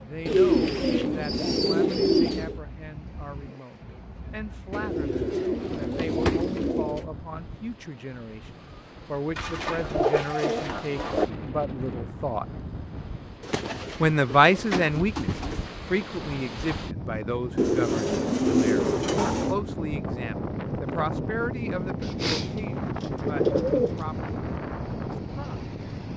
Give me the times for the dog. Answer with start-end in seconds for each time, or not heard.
not heard.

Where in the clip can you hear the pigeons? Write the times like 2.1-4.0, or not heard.
0.2-2.6, 4.7-7.0, 9.3-11.2, 13.4-15.7, 17.6-19.6, 22.0-24.4.